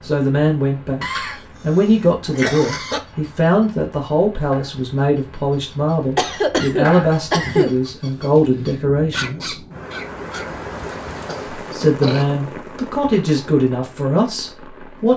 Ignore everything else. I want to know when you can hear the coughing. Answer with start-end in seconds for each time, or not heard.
1.0-1.8, 2.4-3.0, 6.2-7.8, 11.2-12.2.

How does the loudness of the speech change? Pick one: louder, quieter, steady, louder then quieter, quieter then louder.
steady.